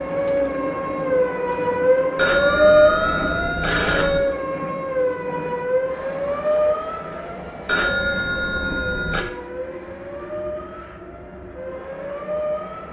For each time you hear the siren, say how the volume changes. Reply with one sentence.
The siren can be heard from 0.0 to 12.8 s, getting quieter.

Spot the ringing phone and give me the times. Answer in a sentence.
The ringing phone can be heard from 2.1 to 4.2 s and from 7.7 to 9.2 s.